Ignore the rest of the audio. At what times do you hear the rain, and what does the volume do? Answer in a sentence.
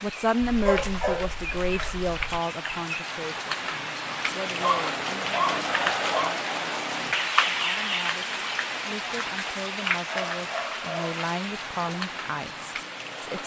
The rain can be heard from 0.0 to 13.4 s, getting louder then quieter.